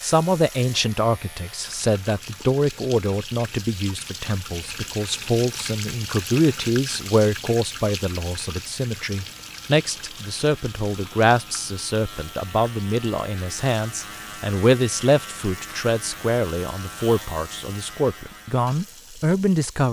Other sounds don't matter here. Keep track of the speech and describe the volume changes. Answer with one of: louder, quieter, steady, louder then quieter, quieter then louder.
steady.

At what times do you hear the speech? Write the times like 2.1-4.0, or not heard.
0.0-19.8.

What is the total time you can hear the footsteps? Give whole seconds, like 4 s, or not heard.
not heard.